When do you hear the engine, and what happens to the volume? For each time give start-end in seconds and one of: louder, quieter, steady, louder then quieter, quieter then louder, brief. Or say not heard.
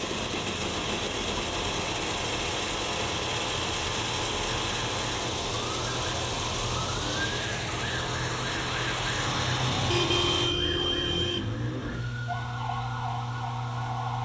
0.0-14.2 quieter.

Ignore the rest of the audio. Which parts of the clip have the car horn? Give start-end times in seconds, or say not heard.
9.1-11.6.